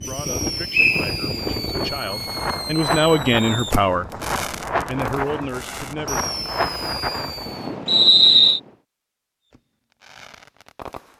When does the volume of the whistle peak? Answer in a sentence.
The loudest moment of the whistle is at 8 seconds.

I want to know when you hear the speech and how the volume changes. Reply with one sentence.
You can hear the speech from 0.0 to 4.1 s, getting louder; and briefly from 4.8 to 6.3 s.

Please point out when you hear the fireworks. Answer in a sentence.
You can hear the fireworks from 0.0 to 7.8 s and from 9.4 to 11.1 s.